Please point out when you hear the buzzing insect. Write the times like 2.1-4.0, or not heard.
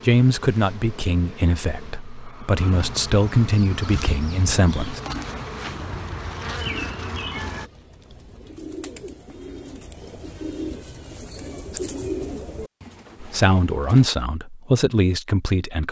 0.0-7.7.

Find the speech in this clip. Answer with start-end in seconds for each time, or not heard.
0.0-5.0, 13.2-15.8.